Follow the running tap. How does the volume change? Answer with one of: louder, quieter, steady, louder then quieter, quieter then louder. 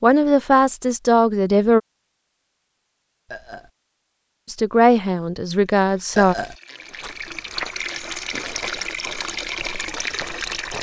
louder.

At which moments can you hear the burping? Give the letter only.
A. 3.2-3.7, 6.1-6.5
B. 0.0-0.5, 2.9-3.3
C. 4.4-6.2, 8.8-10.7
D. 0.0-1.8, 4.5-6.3
A.